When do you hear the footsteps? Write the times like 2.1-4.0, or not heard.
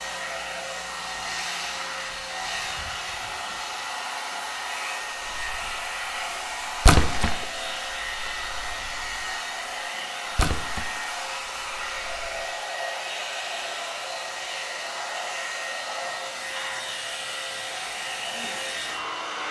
not heard.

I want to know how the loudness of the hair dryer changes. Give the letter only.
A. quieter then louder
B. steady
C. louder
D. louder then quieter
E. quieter
B.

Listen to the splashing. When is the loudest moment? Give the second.
7 s.